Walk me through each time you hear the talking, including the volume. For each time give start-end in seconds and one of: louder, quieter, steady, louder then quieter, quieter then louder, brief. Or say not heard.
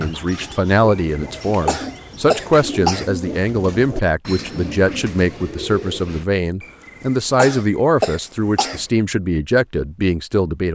0.0-10.7 steady.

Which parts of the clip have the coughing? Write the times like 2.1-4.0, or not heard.
0.8-3.1, 6.6-8.8.